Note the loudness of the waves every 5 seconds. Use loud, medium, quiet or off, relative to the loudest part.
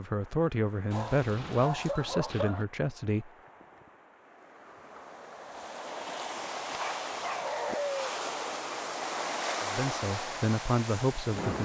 quiet, loud, loud.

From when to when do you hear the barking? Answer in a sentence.
The barking can be heard from 0.9 to 2.6 s and from 6.7 to 8.2 s.